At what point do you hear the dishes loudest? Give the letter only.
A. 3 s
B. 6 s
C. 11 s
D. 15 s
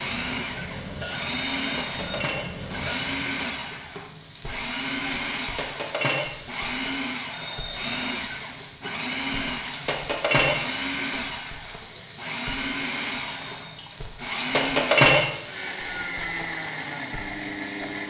D.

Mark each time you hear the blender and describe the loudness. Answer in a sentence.
The blender can be heard from 0.0 to 18.0 s, at a steady volume.